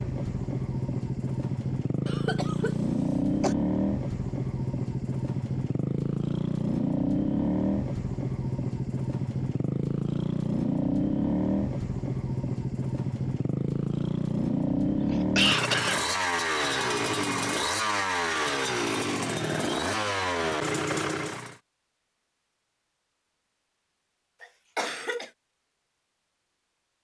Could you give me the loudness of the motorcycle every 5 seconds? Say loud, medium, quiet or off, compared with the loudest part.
loud, loud, loud, loud, loud, off.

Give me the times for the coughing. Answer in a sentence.
You can hear the coughing from 2.0 to 3.5 s, from 14.9 to 16.0 s and from 24.4 to 25.2 s.